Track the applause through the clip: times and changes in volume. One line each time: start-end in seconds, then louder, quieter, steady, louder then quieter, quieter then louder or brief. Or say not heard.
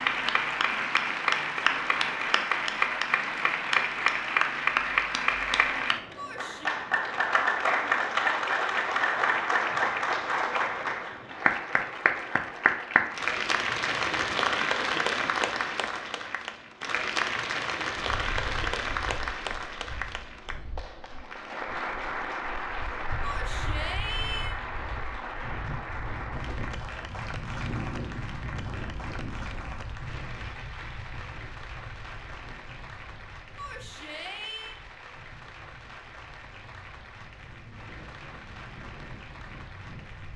0.0-40.3 quieter.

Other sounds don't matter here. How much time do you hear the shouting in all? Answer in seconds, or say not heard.
3 s.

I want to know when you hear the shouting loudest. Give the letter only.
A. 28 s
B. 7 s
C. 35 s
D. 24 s
D.